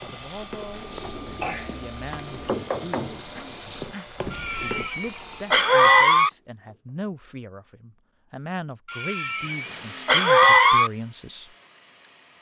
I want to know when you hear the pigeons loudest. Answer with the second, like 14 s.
3 s.